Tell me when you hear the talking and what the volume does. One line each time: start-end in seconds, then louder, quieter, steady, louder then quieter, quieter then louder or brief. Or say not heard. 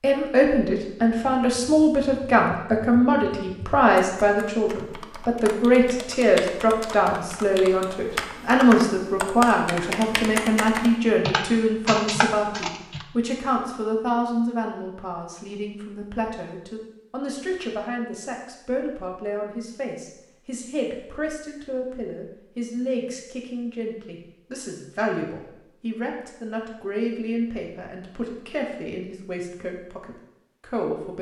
0.0-31.1 quieter.